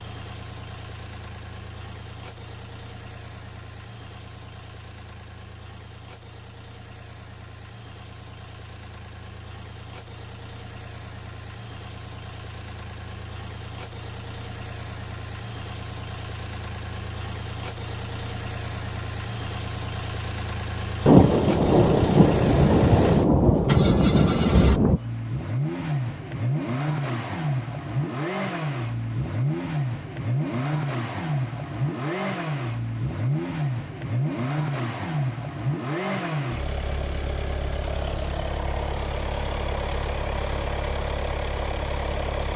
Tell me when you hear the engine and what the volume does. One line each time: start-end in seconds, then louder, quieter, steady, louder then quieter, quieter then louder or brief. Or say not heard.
0.0-42.5 louder.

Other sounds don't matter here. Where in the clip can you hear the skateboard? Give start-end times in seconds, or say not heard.
not heard.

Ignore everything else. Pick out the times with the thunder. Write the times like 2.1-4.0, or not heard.
21.1-25.0.